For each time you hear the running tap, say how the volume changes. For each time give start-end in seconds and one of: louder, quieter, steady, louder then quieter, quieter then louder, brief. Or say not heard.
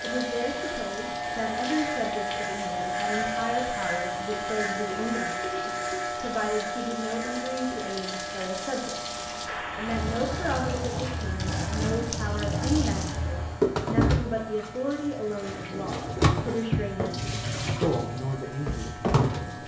0.0-19.6 louder.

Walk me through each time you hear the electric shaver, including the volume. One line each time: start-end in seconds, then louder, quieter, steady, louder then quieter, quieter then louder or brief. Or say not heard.
0.0-19.6 quieter.